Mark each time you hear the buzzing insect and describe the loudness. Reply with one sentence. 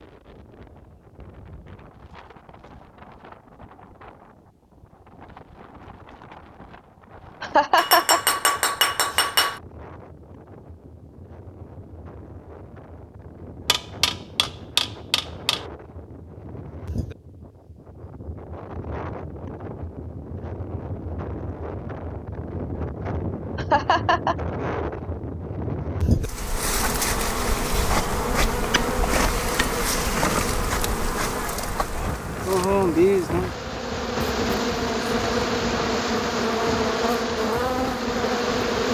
You can hear the buzzing insect from 26.2 to 38.8 s, at a steady volume.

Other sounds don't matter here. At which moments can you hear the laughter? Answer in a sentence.
The laughter can be heard from 7.4 to 8.4 s and from 23.6 to 24.4 s.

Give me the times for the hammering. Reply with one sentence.
You can hear the hammering from 7.8 to 9.6 s, from 13.7 to 15.7 s and from 27.9 to 29.9 s.